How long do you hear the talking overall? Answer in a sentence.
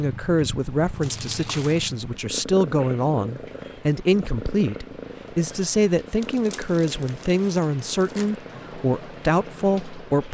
The talking can be heard for 10 seconds in total.